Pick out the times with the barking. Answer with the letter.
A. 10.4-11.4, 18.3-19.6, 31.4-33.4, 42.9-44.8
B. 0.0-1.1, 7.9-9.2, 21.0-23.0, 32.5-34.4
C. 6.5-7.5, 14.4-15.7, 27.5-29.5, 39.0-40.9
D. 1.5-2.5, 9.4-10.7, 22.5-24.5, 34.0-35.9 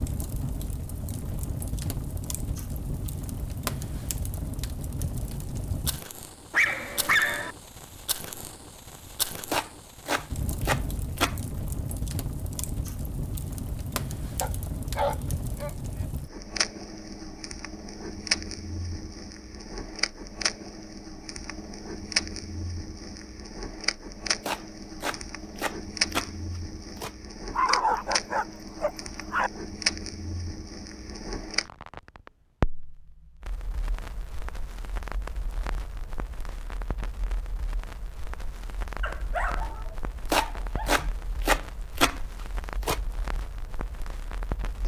C.